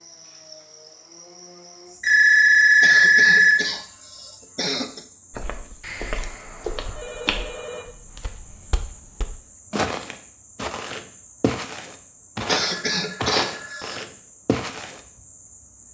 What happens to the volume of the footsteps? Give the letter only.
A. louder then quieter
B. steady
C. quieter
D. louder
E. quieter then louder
E.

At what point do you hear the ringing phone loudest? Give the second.
3 s.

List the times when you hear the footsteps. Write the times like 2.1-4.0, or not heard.
5.3-15.0.